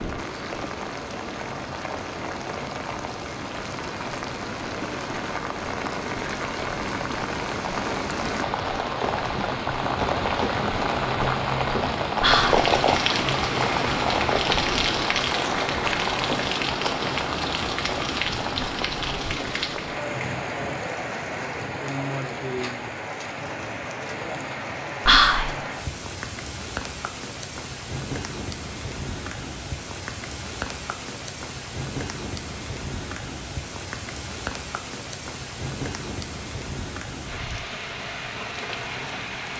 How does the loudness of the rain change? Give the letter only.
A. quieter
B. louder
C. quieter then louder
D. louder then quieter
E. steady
D.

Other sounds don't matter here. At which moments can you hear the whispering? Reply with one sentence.
You can hear the whispering from 12.2 to 12.7 s and from 25.1 to 25.6 s.